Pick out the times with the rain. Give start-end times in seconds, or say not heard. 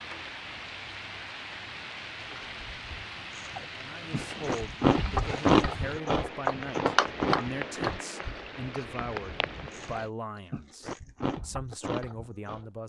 0.0-10.1.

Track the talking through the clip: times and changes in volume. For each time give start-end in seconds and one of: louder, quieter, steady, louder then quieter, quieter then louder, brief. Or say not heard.
3.8-12.8 steady.